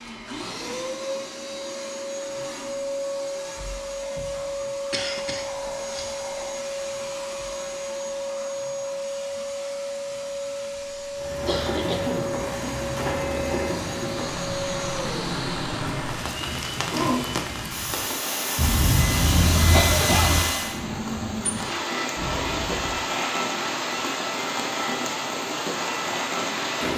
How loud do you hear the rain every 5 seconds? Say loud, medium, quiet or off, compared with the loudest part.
off, off, loud, loud, loud, loud.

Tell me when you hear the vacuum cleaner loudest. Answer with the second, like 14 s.
20 s.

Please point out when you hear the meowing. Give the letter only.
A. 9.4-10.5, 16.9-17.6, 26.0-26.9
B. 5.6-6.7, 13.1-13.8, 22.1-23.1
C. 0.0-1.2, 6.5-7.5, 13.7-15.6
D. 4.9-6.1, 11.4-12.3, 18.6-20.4
B.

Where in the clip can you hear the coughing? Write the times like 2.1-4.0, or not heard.
4.9-6.1, 11.4-12.3, 18.6-20.4.